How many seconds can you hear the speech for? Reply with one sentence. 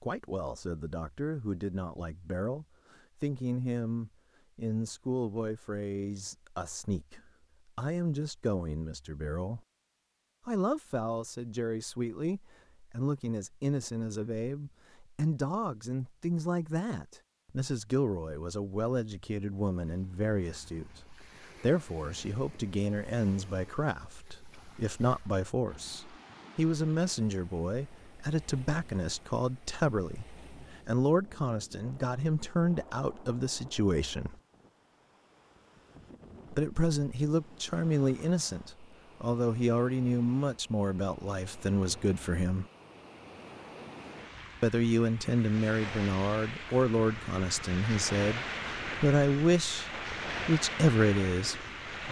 You can hear the speech for 47 seconds altogether.